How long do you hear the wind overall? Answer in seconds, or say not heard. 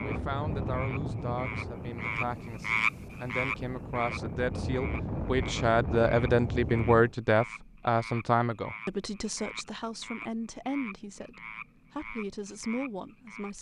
7 s.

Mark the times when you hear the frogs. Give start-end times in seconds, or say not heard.
0.0-13.5.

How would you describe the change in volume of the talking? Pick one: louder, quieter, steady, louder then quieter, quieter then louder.
louder then quieter.